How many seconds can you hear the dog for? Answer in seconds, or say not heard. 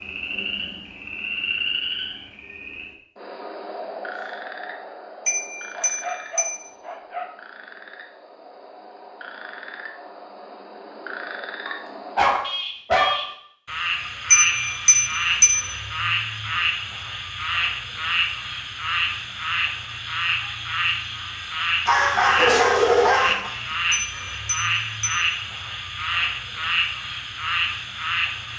5 s.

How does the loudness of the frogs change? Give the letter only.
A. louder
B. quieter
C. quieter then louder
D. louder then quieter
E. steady
C.